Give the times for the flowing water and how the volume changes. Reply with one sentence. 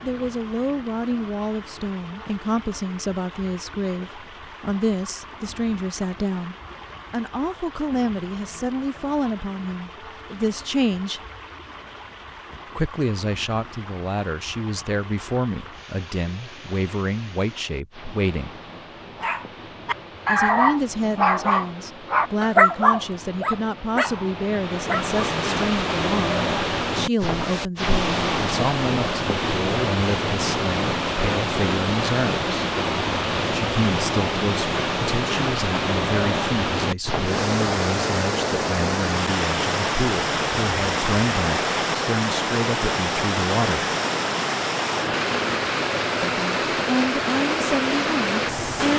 The flowing water can be heard from 0.0 to 48.9 s, getting louder.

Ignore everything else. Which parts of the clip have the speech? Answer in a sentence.
The speech can be heard from 0.0 to 11.2 s, from 12.8 to 18.6 s, from 20.2 to 32.5 s, from 33.5 to 43.9 s and from 46.2 to 48.9 s.